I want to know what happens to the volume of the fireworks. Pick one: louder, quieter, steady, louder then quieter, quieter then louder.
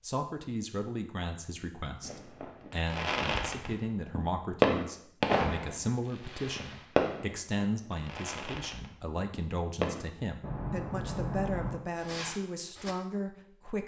louder then quieter.